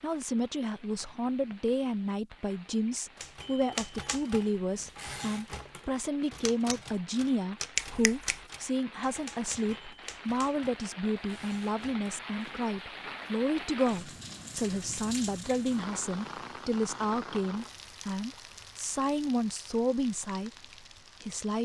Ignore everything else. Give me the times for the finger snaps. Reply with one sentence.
You can hear the finger snaps from 7.8 to 8.4 s.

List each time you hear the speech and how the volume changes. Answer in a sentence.
The speech can be heard from 0.0 to 21.6 s, at a steady volume.